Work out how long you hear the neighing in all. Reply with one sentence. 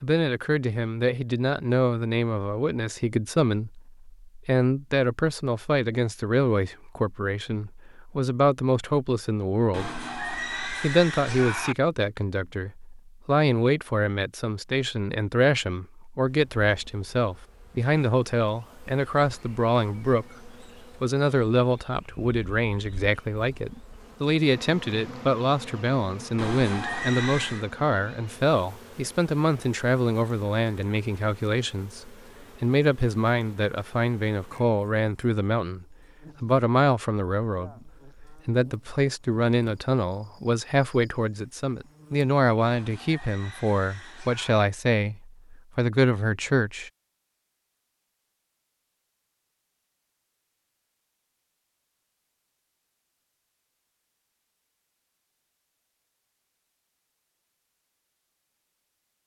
You can hear the neighing for 5 seconds altogether.